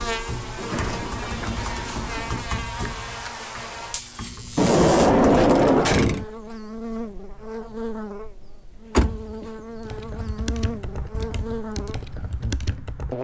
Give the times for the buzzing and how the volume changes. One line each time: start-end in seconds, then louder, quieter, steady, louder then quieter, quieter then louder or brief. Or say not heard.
0.0-13.1 steady.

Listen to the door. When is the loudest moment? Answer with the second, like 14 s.
5 s.